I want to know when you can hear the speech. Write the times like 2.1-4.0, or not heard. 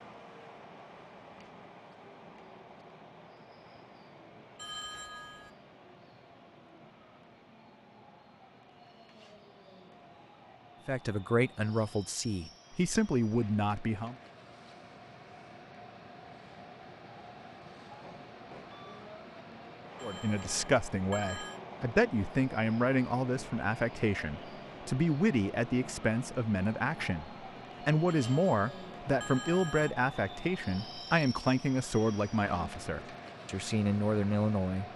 10.8-14.2, 20.0-34.9.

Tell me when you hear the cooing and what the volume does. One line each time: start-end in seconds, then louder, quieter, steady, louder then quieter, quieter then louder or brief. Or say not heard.
not heard.